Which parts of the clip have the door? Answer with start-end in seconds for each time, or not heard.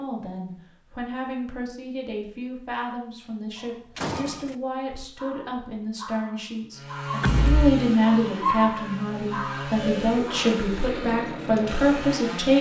4.0-4.5, 7.2-7.7.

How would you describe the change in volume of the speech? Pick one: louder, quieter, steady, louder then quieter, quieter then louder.
louder.